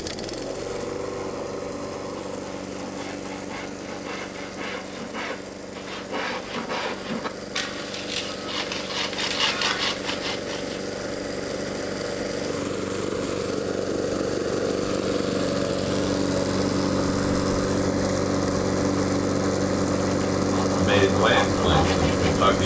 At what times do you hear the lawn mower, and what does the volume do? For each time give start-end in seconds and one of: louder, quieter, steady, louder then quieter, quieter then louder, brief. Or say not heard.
0.0-22.6 louder.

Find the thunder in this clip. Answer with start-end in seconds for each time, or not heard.
not heard.